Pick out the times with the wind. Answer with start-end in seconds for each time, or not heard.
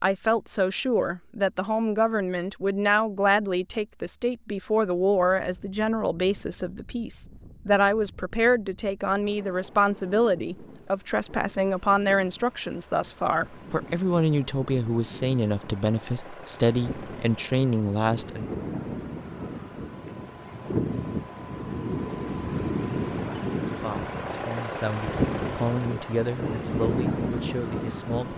5.1-28.3.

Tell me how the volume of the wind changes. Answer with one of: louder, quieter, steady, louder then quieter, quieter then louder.
louder.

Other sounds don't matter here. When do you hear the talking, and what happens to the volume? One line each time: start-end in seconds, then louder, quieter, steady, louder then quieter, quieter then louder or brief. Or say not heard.
0.0-18.4 steady
23.6-28.3 louder then quieter.